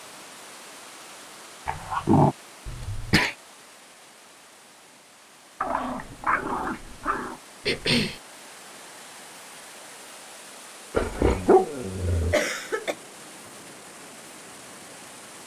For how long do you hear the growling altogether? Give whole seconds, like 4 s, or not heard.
4 s.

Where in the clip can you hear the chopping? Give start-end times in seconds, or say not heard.
not heard.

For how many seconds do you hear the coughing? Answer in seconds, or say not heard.
2 s.